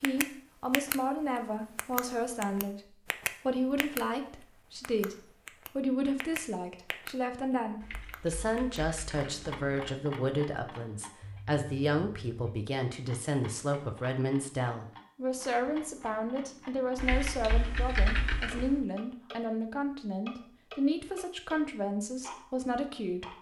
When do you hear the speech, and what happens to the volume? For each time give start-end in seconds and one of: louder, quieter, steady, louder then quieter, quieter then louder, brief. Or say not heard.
0.0-23.3 steady.